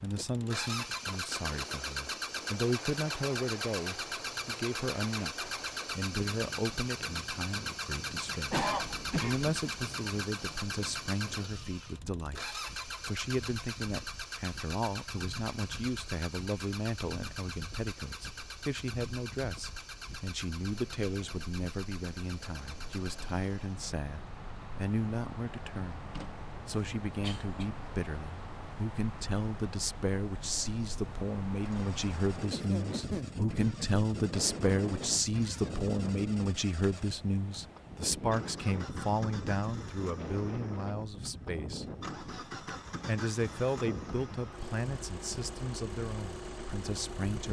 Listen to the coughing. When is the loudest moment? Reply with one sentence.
The volume of the coughing peaks at 9 seconds.